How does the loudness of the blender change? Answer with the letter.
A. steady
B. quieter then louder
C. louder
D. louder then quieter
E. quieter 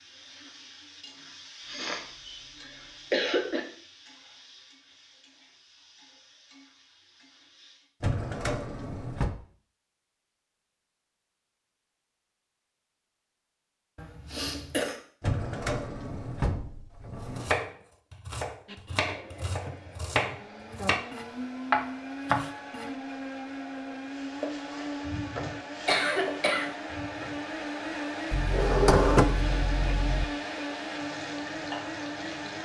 C.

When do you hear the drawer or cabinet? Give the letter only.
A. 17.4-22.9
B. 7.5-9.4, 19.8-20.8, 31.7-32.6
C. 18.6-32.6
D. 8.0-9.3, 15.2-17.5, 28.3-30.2
D.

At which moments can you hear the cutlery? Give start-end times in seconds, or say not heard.
not heard.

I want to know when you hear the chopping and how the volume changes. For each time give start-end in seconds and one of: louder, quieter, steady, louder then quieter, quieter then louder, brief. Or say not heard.
17.4-22.9 louder.